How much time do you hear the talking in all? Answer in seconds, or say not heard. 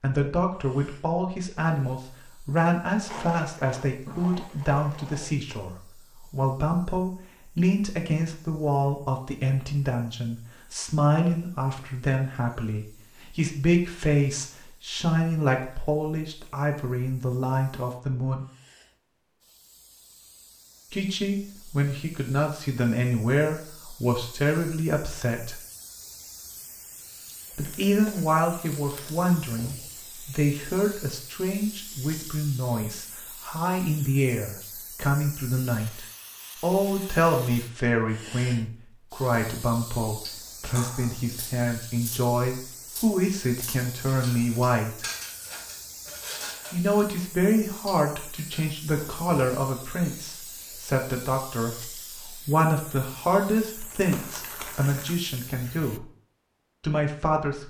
51 s.